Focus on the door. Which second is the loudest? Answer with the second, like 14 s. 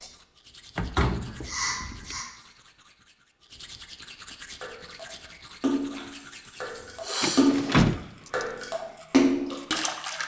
8 s.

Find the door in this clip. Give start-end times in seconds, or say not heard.
0.8-2.1, 7.2-8.4.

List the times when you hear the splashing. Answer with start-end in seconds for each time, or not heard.
4.6-10.2.